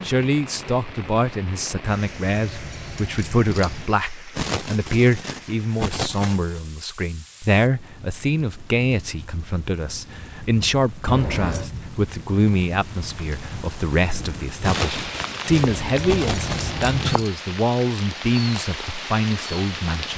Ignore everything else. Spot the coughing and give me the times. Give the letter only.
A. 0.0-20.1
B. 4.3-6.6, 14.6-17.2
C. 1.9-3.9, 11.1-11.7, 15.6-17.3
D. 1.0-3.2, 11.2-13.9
B.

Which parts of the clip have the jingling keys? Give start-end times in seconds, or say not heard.
1.9-3.9, 11.1-11.7, 15.6-17.3.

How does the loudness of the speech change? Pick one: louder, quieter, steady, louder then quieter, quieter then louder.
steady.